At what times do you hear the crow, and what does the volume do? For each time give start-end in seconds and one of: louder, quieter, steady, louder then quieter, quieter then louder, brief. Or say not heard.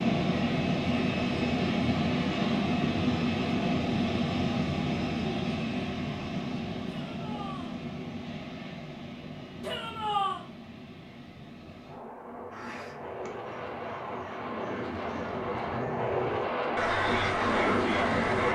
12.5-18.5 louder.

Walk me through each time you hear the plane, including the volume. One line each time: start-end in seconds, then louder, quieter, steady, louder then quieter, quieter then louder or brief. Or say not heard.
0.0-18.5 quieter then louder.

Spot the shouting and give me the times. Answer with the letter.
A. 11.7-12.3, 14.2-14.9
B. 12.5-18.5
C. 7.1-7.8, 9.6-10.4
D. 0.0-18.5
C.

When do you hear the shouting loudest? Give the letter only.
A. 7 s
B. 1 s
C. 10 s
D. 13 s
C.